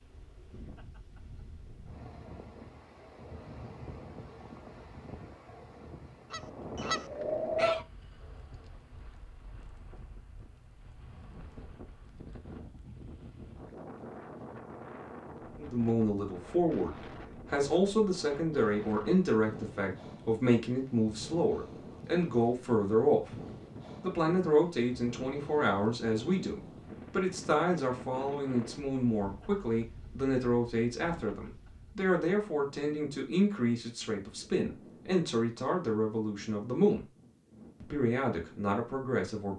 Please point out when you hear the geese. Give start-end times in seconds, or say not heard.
6.3-7.8.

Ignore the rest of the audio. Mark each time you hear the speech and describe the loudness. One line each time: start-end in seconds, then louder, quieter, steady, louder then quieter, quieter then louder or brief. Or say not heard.
15.6-23.4 steady
24.0-37.0 steady
37.8-39.5 brief.